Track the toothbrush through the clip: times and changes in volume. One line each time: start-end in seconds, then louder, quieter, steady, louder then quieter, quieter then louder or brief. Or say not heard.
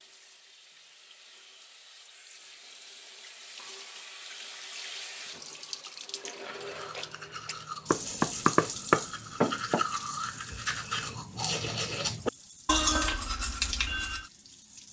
6.4-14.3 louder.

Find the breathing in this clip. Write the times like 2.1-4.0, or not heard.
not heard.